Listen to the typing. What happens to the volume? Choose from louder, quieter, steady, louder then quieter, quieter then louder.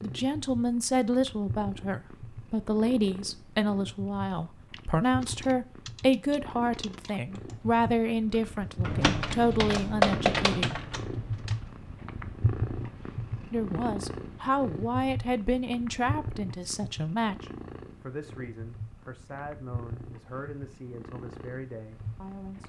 quieter then louder.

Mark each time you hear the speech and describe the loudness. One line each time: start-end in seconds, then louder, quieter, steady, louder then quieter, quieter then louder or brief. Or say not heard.
0.0-10.8 steady
13.5-22.6 quieter.